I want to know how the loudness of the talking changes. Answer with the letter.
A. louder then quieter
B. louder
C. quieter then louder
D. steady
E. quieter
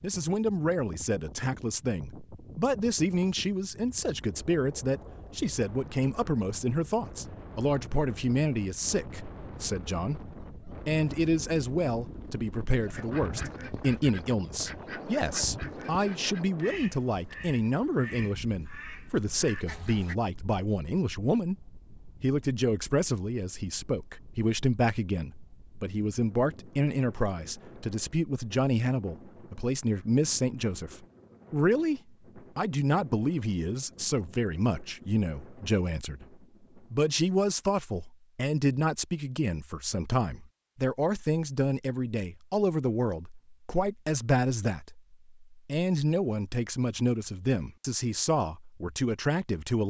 D.